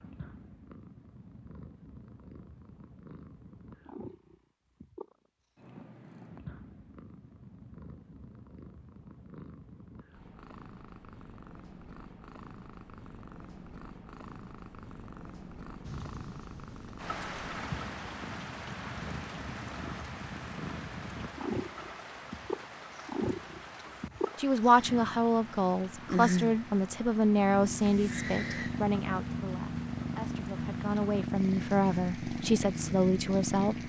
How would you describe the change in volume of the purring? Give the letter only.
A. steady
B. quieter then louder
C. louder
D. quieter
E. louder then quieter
C.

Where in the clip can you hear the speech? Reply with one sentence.
The speech can be heard from 24.4 to 33.8 s.